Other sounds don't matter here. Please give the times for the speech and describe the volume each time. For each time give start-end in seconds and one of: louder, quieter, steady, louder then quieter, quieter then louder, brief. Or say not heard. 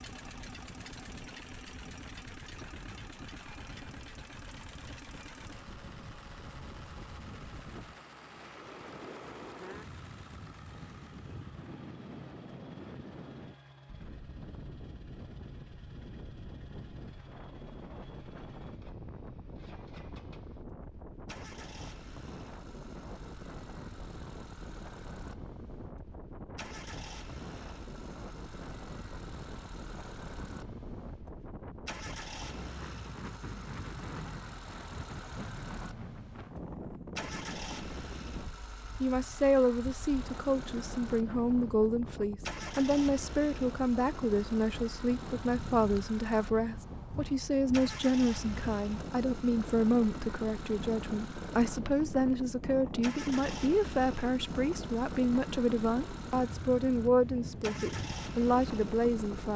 39.0-59.5 steady.